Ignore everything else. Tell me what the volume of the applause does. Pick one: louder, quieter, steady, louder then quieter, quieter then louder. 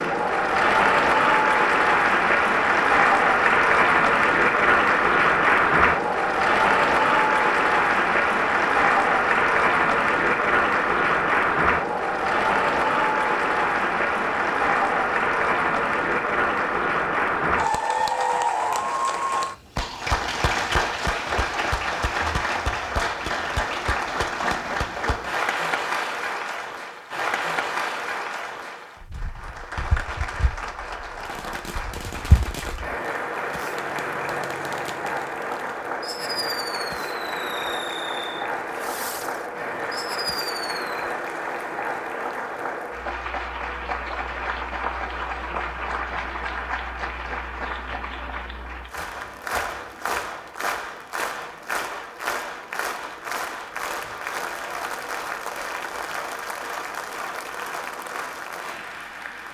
quieter.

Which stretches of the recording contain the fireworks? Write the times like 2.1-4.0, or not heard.
31.1-41.0.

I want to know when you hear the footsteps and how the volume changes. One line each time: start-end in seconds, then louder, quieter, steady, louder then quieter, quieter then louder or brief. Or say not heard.
not heard.